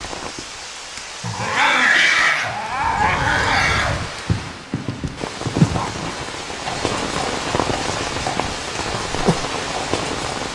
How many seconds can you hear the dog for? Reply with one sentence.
You can hear the dog for 3 seconds altogether.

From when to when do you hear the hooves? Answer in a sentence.
The hooves can be heard from 2.6 to 10.2 s.